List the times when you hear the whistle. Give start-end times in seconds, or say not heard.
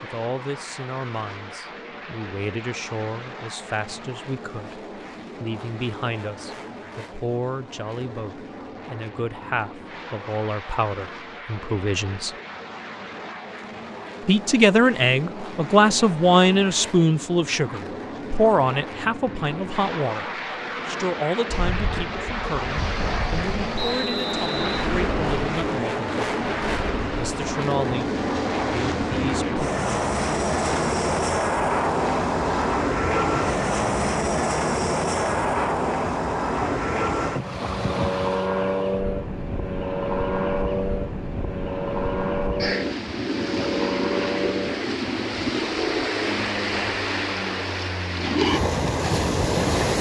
23.8-24.9.